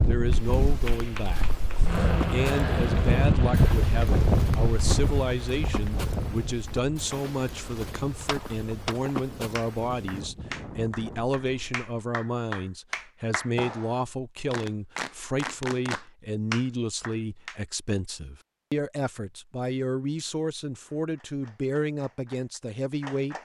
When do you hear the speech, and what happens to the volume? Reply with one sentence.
The speech can be heard from 0.1 to 23.4 s, at a steady volume.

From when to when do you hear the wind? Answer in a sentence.
The wind can be heard from 0.0 to 11.8 s.